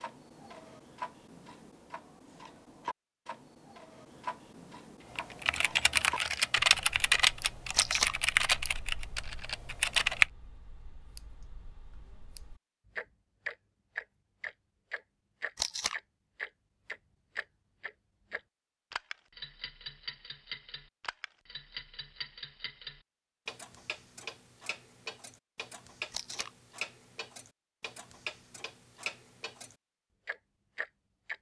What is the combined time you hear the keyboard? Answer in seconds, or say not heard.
5 s.